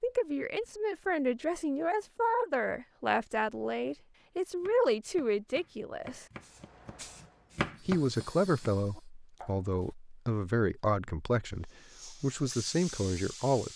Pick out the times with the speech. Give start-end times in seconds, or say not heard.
0.0-6.2, 7.8-13.7.